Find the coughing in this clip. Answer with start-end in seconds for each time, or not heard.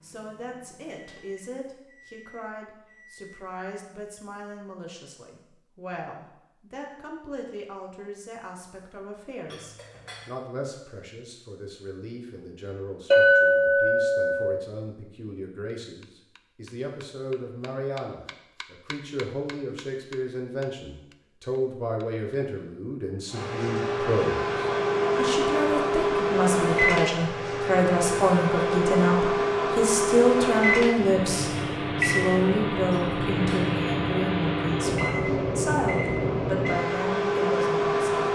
not heard.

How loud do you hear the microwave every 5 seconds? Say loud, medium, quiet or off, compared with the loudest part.
quiet, off, off, off, loud, loud, loud, loud.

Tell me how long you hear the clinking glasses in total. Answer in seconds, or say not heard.
3 s.